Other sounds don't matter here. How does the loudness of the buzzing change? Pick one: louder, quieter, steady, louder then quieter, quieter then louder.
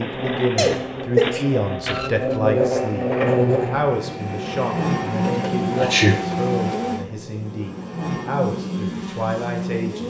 louder then quieter.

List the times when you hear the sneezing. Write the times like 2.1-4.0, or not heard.
0.6-1.4, 5.8-6.2.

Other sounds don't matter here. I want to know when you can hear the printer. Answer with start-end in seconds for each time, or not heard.
0.0-7.0.